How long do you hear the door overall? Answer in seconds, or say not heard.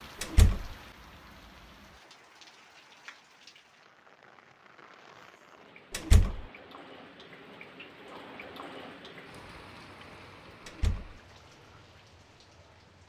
2 s.